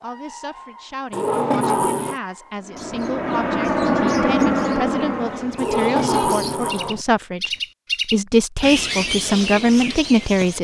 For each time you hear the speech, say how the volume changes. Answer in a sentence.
You can hear the speech from 0.0 to 7.5 s, getting louder; and briefly from 8.1 to 10.5 s.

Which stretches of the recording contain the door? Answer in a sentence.
The door can be heard from 1.1 to 2.2 s and from 5.5 to 7.0 s.